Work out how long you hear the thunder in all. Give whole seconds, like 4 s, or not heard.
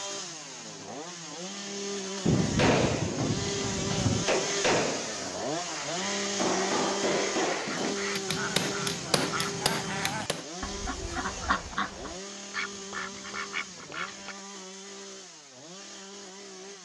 2 s.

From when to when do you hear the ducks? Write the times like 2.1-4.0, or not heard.
5.7-14.3.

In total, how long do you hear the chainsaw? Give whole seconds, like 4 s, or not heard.
17 s.